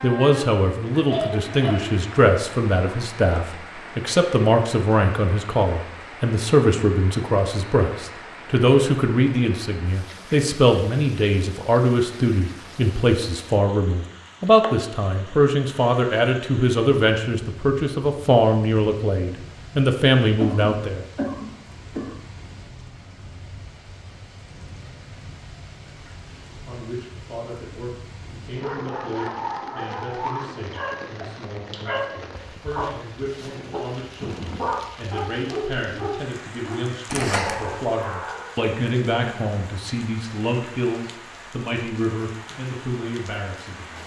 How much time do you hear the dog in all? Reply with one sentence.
The dog can be heard for 10 seconds in total.